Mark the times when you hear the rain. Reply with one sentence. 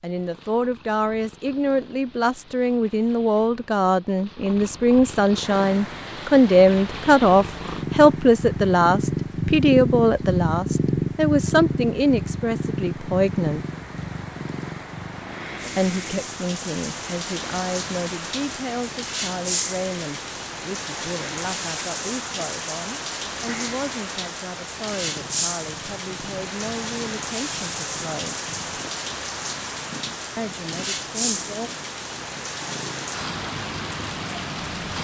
You can hear the rain from 5.3 to 34.9 s.